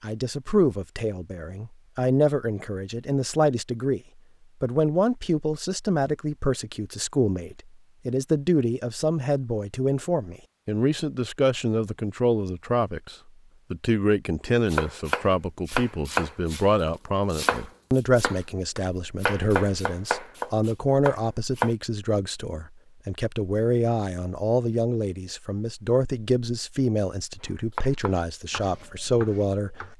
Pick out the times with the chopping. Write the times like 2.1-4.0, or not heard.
14.7-21.7, 27.8-29.9.